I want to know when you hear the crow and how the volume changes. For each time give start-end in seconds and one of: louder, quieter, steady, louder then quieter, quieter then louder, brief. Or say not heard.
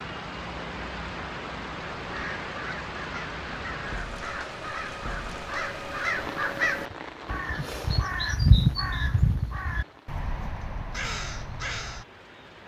2.0-12.1 louder then quieter.